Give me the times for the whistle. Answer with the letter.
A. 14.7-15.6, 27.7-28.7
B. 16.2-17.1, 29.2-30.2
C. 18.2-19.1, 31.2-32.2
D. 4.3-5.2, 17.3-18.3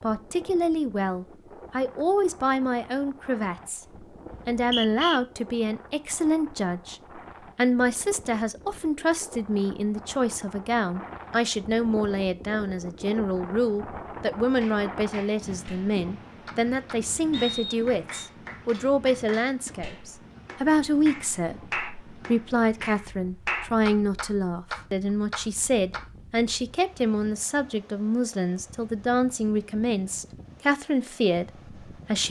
D.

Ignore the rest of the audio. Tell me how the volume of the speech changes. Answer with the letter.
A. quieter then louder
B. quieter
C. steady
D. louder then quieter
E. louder
C.